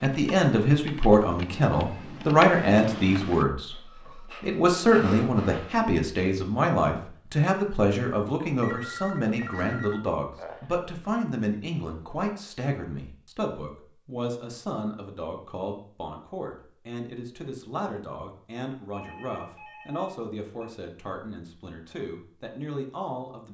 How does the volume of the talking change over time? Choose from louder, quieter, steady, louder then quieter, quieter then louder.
quieter.